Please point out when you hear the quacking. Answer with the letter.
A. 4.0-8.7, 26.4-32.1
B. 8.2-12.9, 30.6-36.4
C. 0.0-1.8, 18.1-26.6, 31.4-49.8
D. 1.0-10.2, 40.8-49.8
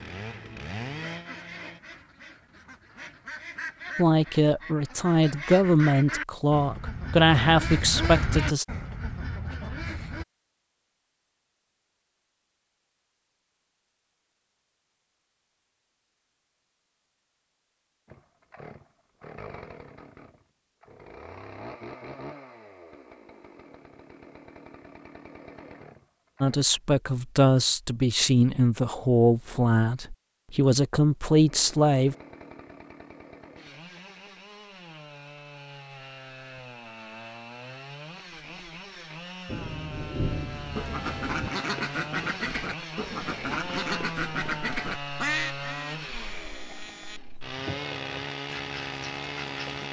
D.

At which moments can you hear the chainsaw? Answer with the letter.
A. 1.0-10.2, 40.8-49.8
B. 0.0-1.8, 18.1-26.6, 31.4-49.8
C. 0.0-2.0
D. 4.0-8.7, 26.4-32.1
B.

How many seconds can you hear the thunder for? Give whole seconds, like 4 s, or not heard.
2 s.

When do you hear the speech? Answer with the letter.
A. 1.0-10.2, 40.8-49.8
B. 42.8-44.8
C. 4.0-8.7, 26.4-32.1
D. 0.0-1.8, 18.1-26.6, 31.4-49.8
C.